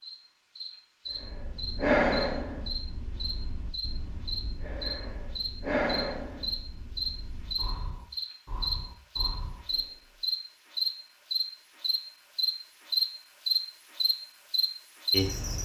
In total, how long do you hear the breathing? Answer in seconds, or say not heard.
9 s.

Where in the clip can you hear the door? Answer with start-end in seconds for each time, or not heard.
not heard.